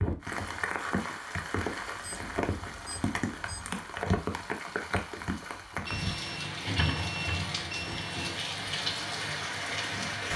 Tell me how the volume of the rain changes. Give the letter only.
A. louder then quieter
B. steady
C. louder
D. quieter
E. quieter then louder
B.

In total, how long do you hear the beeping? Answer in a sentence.
The beeping can be heard for 4 seconds in total.